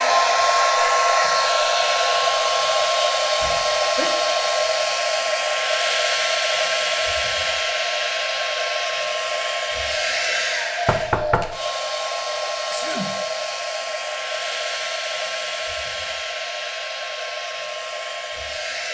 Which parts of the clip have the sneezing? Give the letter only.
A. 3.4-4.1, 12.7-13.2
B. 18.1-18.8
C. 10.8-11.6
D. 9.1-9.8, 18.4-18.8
A.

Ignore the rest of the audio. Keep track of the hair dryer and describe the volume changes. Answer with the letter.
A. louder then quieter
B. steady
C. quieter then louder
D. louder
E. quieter
E.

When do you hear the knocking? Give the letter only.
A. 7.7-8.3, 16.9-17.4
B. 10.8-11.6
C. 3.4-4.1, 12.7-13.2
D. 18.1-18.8
B.